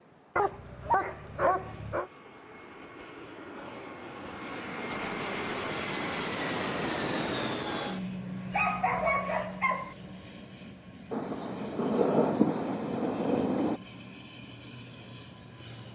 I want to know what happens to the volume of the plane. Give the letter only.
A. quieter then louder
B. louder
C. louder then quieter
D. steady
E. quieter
C.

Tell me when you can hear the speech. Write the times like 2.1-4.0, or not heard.
not heard.